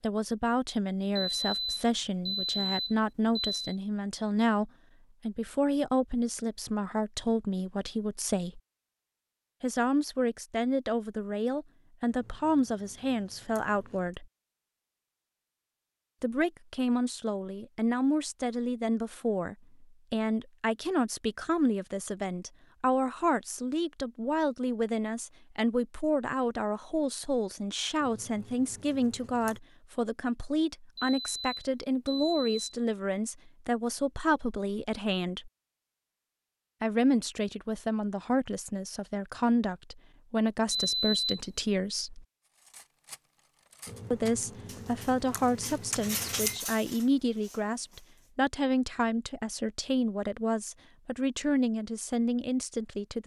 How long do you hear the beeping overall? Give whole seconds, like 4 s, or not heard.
5 s.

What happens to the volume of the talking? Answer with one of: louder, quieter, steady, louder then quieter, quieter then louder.
steady.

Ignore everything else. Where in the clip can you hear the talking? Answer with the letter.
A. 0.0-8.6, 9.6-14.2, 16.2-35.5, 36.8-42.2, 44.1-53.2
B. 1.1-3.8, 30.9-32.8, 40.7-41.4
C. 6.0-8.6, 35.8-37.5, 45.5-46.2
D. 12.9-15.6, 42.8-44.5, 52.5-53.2
A.